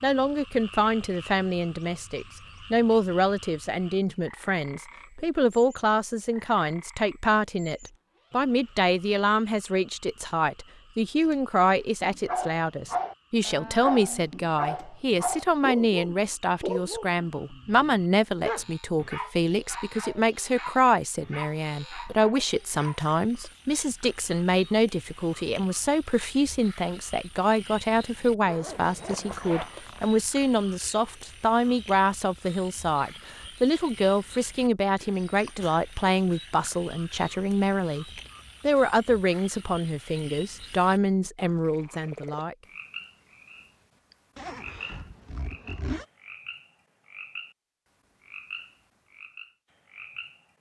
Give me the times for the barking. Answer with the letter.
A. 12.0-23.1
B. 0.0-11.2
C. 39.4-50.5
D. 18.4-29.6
A.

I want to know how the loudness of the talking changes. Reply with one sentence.
The volume of the talking stays about the same.